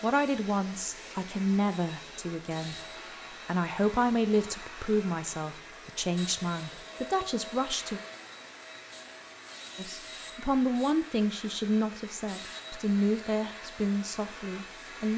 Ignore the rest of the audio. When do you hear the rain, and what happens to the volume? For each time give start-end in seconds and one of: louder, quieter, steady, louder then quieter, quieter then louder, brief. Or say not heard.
not heard.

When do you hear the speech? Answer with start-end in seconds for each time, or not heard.
0.0-8.0, 9.8-15.1.